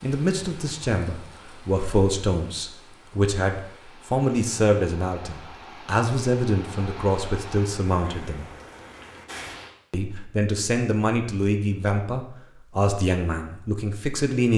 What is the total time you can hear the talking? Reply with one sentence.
The talking can be heard for 13 seconds in total.